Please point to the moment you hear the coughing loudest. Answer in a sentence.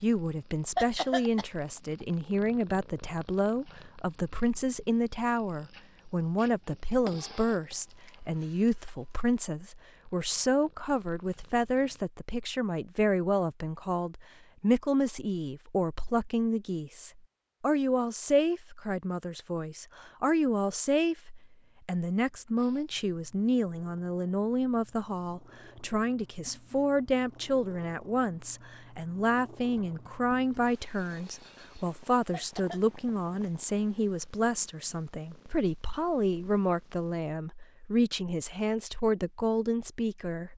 The volume of the coughing peaks at 1 second.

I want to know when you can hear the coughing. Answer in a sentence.
You can hear the coughing from 0.8 to 1.4 s and from 32.3 to 32.8 s.